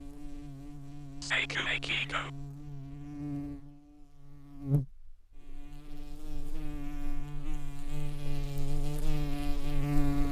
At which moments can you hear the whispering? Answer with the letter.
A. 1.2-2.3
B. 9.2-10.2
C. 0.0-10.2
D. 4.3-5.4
A.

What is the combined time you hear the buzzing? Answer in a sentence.
The buzzing can be heard for 10 seconds in total.